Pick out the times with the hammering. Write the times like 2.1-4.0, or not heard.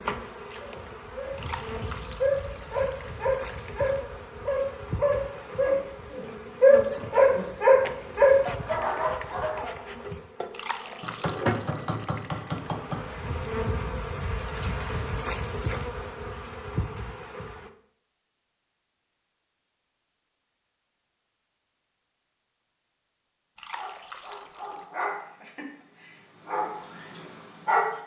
11.0-13.2.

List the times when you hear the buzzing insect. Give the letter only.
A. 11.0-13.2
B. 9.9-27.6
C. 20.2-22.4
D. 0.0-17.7
D.